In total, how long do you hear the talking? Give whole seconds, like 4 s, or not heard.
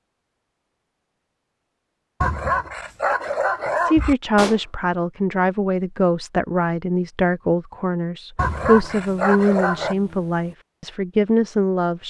8 s.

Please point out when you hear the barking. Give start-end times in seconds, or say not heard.
2.2-4.2, 8.3-9.9.